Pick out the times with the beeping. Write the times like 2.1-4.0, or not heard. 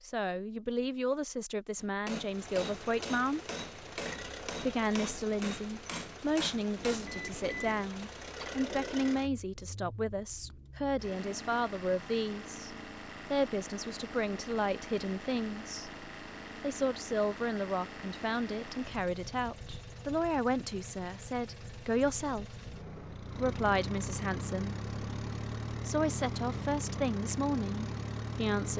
6.8-7.9.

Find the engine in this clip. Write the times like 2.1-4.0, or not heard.
2.2-28.7.